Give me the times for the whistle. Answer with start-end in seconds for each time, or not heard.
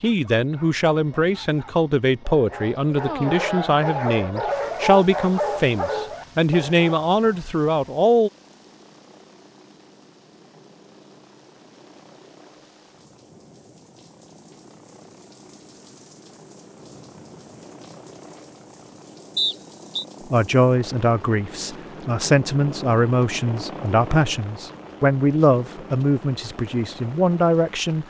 19.4-20.1.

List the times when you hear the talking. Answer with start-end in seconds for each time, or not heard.
0.0-8.3, 20.3-28.0.